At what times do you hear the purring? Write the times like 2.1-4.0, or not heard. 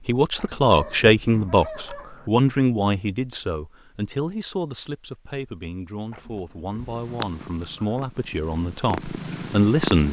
6.8-10.0.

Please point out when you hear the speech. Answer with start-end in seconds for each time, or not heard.
0.1-10.0.